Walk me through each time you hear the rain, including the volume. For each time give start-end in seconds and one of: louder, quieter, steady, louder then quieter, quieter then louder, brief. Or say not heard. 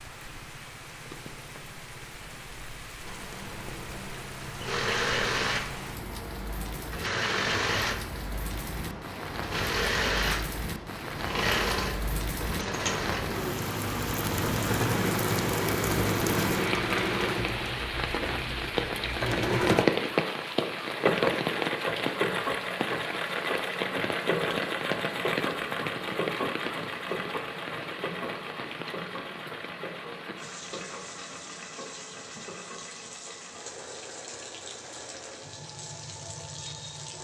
0.0-37.2 louder then quieter.